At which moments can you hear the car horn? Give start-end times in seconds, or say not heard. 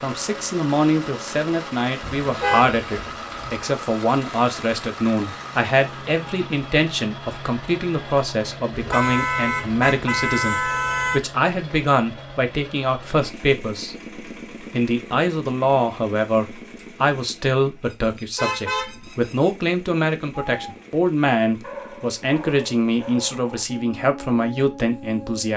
2.0-3.6, 8.7-11.2, 18.1-19.5.